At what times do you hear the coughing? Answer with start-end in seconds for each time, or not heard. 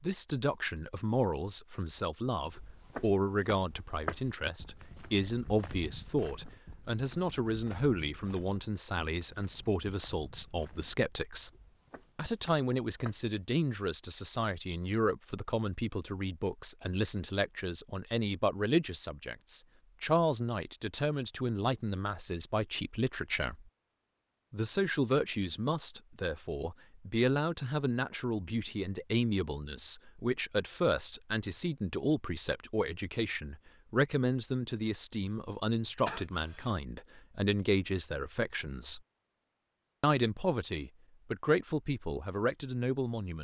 36.0-37.0.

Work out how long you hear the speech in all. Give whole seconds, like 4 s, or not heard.
41 s.